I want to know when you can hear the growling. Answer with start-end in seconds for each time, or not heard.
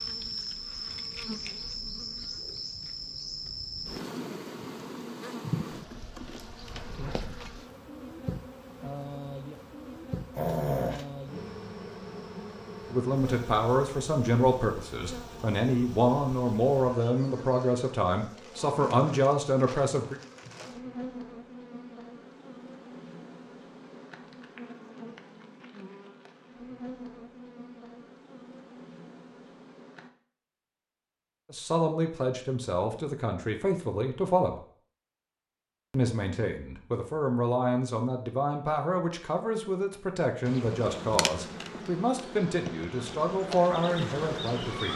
10.3-11.1.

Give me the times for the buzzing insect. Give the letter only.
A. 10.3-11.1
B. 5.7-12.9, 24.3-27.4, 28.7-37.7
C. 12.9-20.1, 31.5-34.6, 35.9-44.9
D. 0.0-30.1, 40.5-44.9
D.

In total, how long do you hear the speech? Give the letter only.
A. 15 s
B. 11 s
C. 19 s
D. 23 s
C.